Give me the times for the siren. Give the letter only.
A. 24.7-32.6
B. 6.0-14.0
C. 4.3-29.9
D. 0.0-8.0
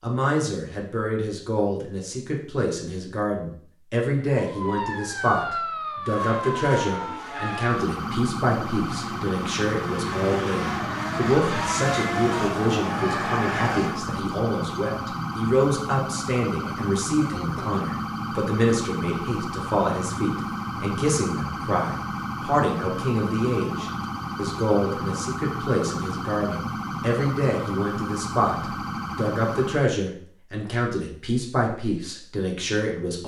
C.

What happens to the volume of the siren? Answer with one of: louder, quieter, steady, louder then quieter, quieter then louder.
steady.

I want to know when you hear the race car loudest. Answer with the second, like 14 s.
12 s.